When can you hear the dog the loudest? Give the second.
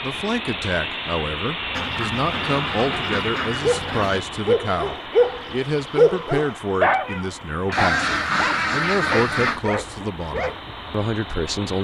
6 s.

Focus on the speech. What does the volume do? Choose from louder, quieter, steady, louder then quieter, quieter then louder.
steady.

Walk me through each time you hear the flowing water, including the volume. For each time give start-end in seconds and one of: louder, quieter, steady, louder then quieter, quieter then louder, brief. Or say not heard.
not heard.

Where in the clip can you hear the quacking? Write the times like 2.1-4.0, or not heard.
1.7-4.3, 7.7-9.7.